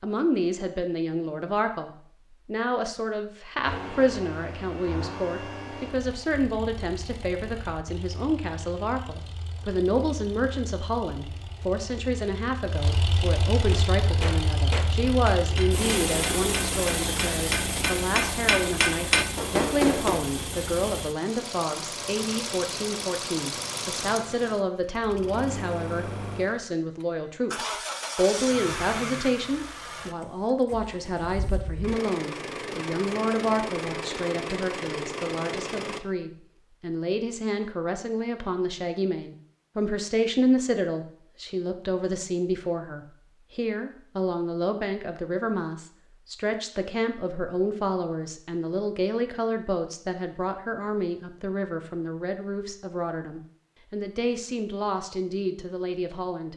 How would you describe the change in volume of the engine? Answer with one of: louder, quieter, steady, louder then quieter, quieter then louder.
louder.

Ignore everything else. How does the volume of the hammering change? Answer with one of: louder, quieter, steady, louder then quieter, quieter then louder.
quieter then louder.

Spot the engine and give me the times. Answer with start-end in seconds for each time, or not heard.
3.6-36.0.